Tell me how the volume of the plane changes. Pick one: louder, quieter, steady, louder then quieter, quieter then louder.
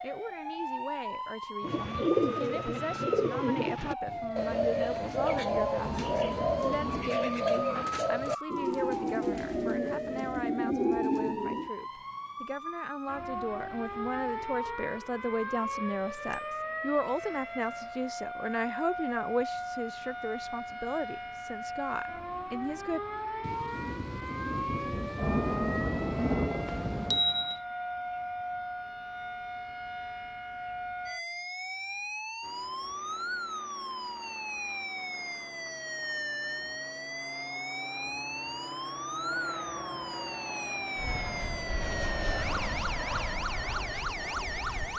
louder.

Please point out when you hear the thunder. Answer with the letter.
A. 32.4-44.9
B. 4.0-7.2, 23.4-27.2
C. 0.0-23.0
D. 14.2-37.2
B.